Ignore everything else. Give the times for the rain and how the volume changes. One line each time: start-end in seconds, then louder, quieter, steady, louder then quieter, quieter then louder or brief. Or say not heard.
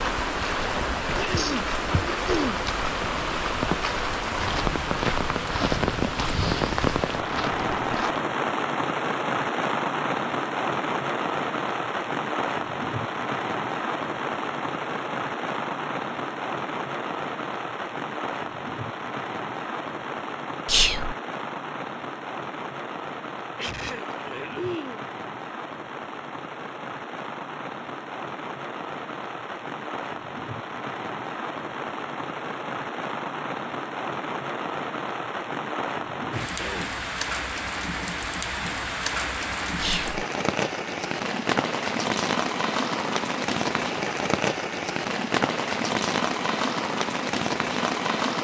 0.0-48.3 quieter then louder.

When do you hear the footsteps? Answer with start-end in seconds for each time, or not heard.
4.4-8.2.